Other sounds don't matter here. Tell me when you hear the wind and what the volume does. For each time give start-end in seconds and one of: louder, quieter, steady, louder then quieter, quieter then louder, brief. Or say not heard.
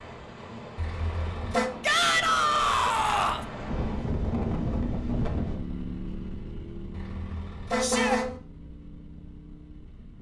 0.0-5.6 louder.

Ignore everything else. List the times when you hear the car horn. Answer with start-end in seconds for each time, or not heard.
0.8-1.8, 6.9-8.4.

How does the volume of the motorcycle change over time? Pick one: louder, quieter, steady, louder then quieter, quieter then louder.
quieter.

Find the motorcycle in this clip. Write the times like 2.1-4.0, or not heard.
3.5-10.1.